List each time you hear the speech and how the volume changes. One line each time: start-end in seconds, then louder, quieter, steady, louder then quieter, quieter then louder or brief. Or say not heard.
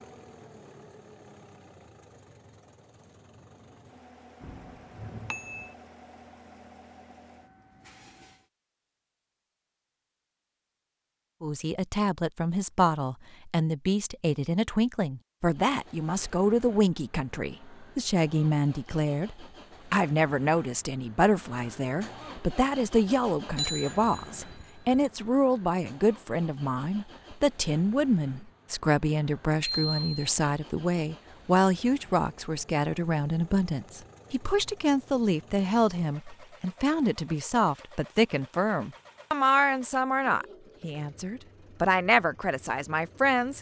11.4-43.5 steady.